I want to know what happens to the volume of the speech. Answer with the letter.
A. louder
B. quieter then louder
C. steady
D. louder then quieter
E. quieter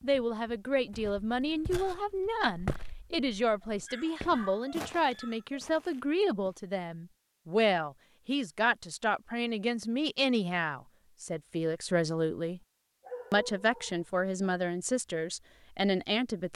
C.